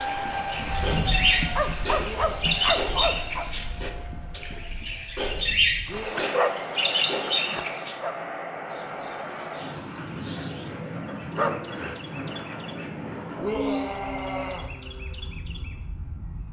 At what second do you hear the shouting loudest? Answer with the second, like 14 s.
14 s.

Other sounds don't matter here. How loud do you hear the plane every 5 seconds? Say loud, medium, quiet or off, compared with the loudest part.
loud, loud, loud, medium.